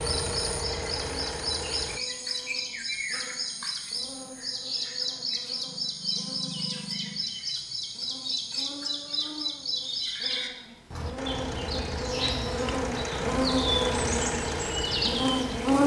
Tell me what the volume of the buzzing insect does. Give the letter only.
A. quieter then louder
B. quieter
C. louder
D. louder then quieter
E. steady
C.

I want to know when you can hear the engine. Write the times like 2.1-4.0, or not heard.
0.0-2.0, 11.2-15.8.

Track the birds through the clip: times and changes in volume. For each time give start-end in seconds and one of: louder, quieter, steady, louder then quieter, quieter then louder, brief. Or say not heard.
0.0-15.8 steady.